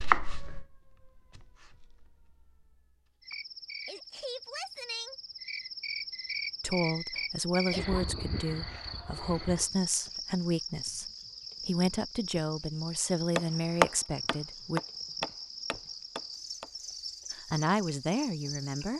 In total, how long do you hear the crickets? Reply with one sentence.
You can hear the crickets for 16 seconds altogether.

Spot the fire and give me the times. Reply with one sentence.
You can't hear the fire here.